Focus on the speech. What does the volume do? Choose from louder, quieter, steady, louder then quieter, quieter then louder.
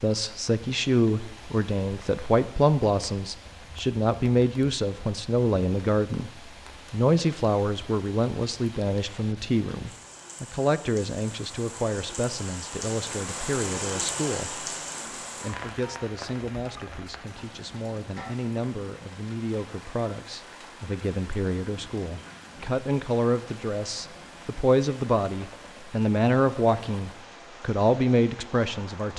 quieter then louder.